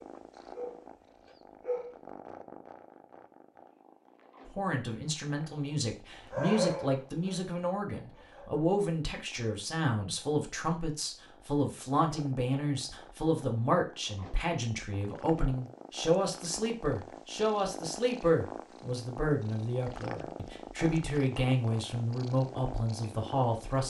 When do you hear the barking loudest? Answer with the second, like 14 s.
7 s.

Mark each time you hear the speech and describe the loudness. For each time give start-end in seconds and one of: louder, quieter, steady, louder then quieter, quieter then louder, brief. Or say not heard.
4.5-23.8 steady.